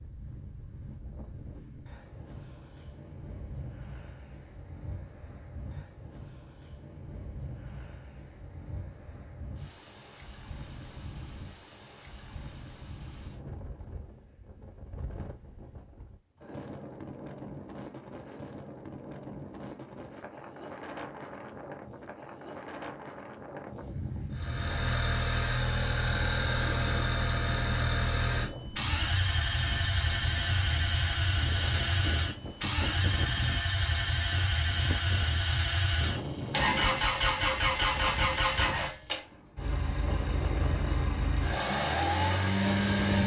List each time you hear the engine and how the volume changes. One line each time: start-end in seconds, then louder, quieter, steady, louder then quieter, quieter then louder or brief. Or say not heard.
24.3-43.2 steady.